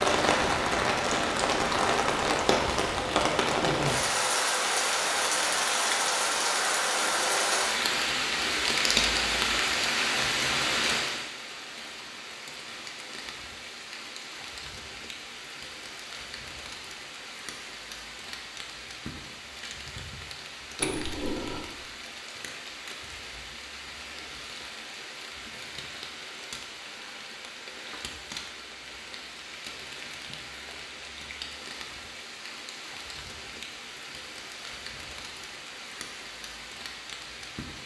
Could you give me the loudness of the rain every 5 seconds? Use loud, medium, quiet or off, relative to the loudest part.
loud, loud, medium, quiet, quiet, quiet, quiet, quiet.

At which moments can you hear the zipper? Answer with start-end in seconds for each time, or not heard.
20.8-21.6.